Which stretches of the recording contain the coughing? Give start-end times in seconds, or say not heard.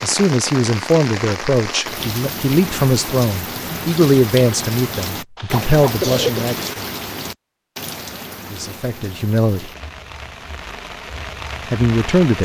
5.3-6.5.